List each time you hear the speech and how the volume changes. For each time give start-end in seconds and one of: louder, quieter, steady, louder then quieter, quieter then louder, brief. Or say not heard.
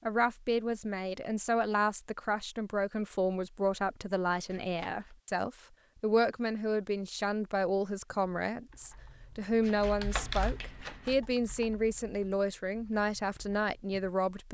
0.1-14.5 steady.